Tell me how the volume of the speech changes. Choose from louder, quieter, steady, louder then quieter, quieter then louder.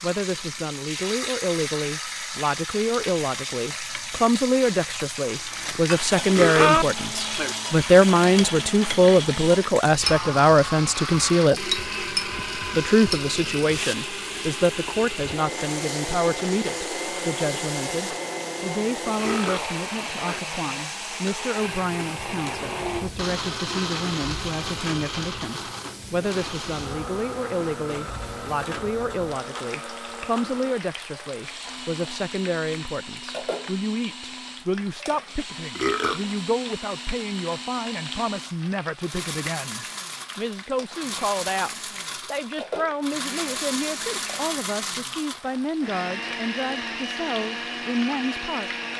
quieter.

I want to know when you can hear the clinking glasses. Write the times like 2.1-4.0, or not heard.
5.8-6.8.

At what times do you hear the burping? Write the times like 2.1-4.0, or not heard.
6.3-7.5, 19.1-20.4, 35.8-36.2.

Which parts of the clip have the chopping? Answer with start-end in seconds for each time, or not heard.
not heard.